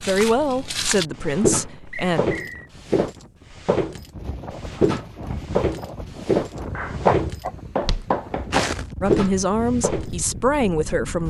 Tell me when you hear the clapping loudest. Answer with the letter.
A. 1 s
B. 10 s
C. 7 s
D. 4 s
C.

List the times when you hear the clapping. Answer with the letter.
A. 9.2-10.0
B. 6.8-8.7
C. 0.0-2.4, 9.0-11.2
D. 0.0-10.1
B.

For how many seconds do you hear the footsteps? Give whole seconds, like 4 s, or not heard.
10 s.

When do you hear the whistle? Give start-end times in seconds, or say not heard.
1.9-2.7.